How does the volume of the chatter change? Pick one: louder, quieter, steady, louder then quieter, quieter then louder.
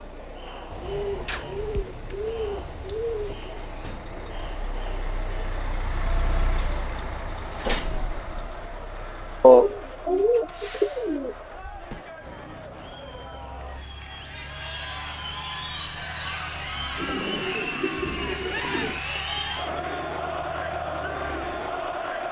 louder.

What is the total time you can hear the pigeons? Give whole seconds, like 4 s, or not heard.
7 s.